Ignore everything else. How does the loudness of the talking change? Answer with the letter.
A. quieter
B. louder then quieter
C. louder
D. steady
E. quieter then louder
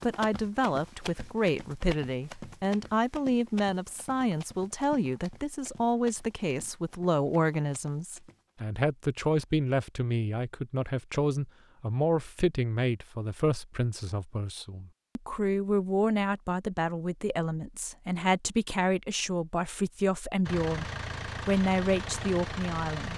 D.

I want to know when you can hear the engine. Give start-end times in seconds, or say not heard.
20.4-23.1.